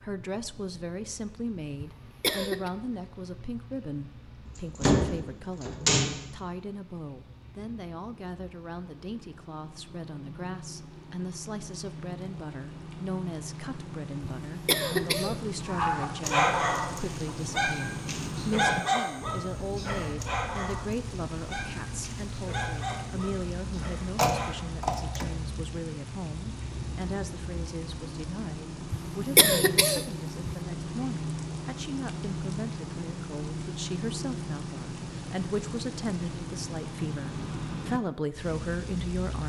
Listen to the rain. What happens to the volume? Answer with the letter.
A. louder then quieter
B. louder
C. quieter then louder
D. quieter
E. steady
B.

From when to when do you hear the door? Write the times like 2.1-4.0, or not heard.
4.5-6.2, 24.1-25.2.